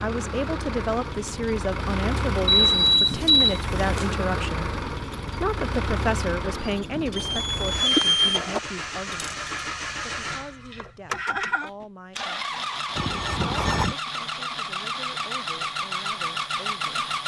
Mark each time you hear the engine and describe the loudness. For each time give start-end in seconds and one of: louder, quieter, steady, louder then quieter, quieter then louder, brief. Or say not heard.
0.0-17.2 steady.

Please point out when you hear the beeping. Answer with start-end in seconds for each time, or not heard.
2.5-4.1, 7.2-8.6, 12.9-13.9.